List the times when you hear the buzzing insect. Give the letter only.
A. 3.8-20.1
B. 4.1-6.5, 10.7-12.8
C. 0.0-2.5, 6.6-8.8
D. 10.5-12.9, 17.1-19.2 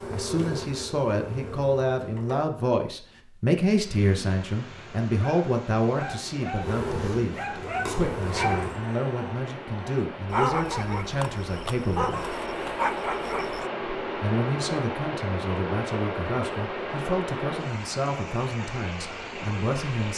C.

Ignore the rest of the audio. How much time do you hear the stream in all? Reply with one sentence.
You can hear the stream for 16 seconds altogether.